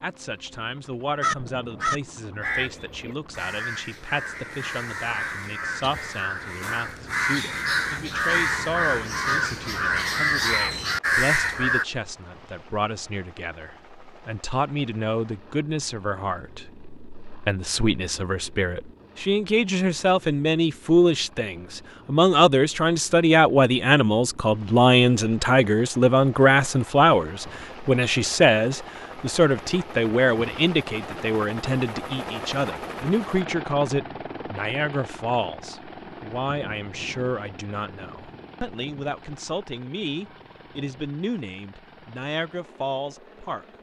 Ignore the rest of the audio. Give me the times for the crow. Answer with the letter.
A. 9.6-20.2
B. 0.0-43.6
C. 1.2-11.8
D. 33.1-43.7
C.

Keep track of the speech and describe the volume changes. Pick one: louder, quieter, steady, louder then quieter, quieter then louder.
louder then quieter.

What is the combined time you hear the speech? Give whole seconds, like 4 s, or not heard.
44 s.